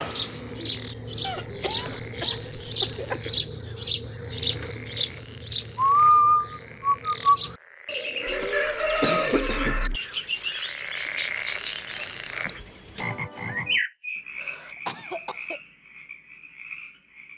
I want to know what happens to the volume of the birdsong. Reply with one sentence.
The volume of the birdsong goes up, then down.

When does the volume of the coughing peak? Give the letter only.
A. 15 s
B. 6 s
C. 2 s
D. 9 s
D.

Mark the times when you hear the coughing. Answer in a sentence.
The coughing can be heard from 1.2 to 3.2 s, from 8.2 to 10.0 s and from 14.3 to 15.6 s.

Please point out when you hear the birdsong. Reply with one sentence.
You can hear the birdsong from 0.0 to 14.2 s.